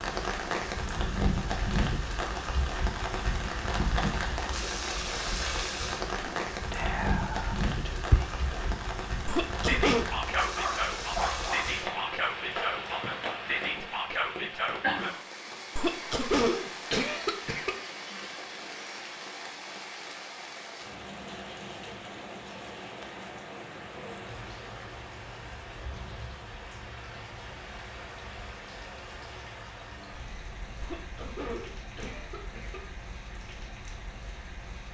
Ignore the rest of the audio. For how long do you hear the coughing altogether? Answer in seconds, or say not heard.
5 s.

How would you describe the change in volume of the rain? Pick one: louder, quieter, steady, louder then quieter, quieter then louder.
quieter.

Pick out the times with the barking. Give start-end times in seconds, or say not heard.
10.2-11.7.